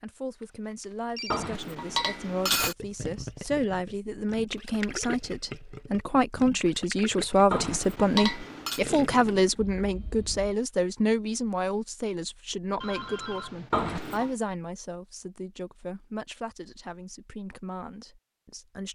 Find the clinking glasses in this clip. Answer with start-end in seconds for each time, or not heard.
1.3-2.8, 7.5-8.8, 13.7-14.3.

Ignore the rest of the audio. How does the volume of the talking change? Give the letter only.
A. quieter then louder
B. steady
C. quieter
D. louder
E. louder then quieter
E.